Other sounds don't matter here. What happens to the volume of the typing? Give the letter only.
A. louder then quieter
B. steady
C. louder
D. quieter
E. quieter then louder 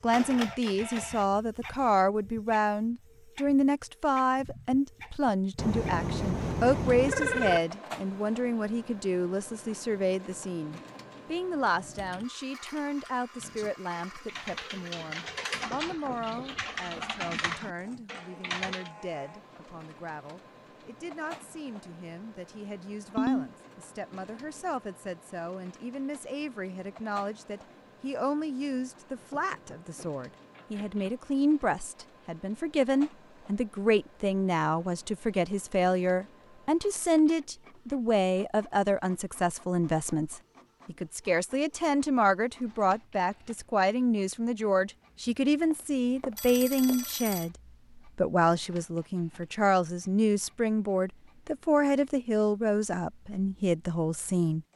C.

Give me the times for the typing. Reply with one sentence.
You can hear the typing from 11.9 to 18.9 s.